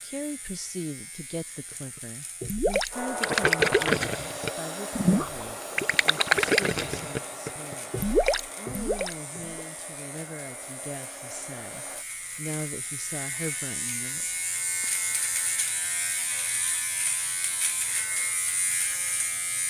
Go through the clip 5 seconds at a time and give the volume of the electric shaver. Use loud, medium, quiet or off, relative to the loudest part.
quiet, quiet, medium, loud.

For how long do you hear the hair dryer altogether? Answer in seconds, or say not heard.
9 s.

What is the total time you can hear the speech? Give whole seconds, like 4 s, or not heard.
15 s.